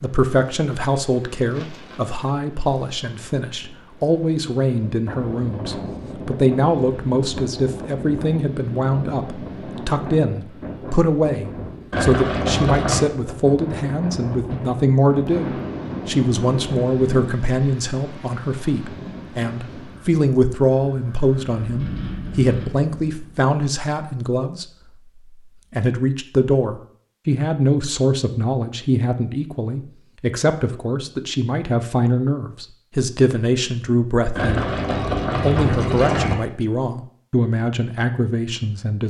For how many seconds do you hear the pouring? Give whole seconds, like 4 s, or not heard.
3 s.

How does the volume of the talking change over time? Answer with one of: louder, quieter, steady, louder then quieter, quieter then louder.
steady.